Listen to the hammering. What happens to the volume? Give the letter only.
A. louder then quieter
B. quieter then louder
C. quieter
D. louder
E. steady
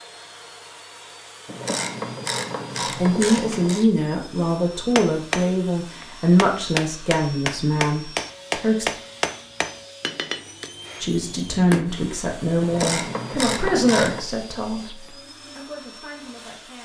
A.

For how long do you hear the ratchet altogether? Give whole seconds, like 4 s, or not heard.
4 s.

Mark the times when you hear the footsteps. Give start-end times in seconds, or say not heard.
not heard.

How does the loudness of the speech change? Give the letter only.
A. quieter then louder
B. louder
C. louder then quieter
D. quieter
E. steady
D.